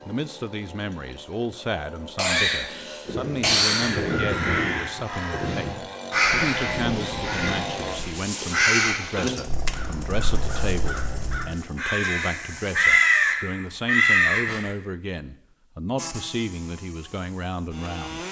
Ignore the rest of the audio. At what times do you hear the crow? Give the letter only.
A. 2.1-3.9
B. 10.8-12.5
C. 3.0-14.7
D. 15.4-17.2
C.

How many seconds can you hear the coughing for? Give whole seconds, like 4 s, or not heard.
2 s.